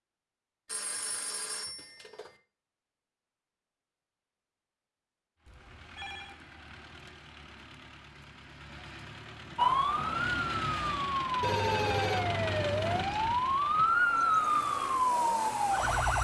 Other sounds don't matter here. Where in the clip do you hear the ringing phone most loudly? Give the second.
12 s.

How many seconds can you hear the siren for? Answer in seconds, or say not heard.
7 s.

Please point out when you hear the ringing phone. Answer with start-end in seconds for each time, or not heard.
0.7-2.3, 5.5-6.3, 11.4-13.1.